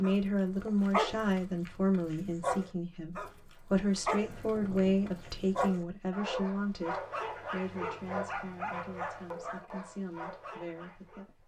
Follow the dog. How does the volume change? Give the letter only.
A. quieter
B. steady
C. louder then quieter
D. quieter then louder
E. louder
A.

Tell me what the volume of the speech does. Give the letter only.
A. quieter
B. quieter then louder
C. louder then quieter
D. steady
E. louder
A.